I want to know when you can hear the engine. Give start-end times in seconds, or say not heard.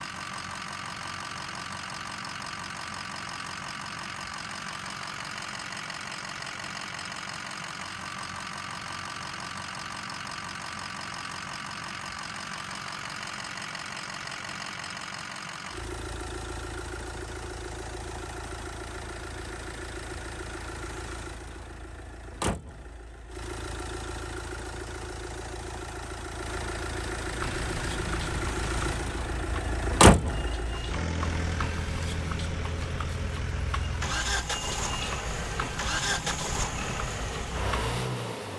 0.0-38.5.